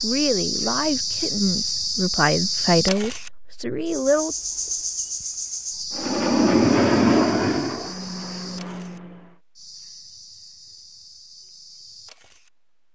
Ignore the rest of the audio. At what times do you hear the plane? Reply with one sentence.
You can hear the plane from 6.0 to 9.4 s.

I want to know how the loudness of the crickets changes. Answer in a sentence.
The volume of the crickets goes down.